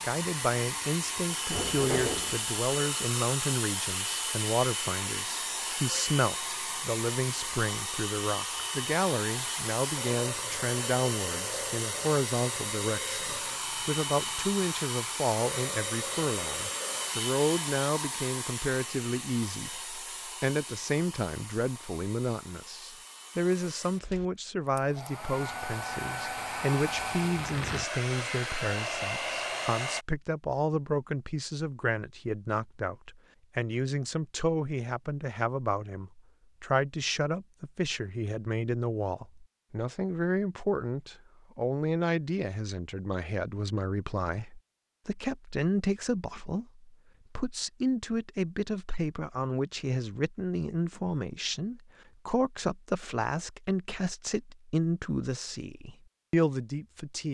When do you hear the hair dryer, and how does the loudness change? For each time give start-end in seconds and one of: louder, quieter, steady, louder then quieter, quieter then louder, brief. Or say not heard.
0.0-30.1 quieter then louder.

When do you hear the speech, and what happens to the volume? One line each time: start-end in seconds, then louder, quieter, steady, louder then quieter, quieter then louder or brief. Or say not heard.
0.0-57.2 steady.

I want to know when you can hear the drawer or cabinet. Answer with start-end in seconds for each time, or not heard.
1.5-2.4.